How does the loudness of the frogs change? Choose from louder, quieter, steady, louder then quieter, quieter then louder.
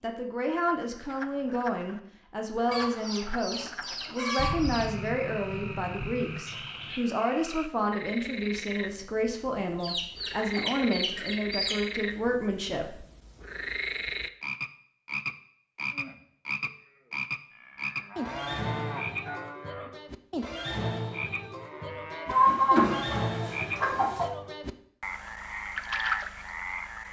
louder.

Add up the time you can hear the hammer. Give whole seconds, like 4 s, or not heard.
not heard.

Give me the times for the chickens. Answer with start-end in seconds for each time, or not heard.
2.7-5.1, 9.8-11.8, 22.2-24.3.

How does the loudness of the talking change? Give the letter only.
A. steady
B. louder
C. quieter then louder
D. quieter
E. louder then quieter
A.